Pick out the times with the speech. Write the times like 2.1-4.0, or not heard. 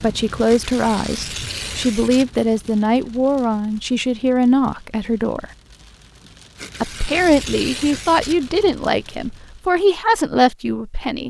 0.0-5.5, 6.8-11.2.